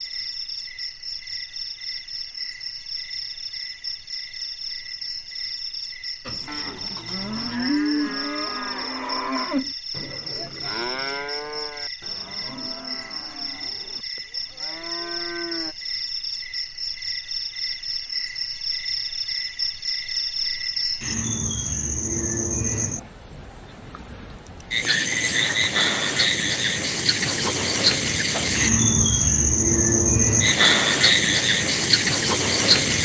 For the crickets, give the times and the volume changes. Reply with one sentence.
You can hear the crickets from 0.0 to 32.9 s, getting louder.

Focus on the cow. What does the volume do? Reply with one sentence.
The volume of the cow goes down.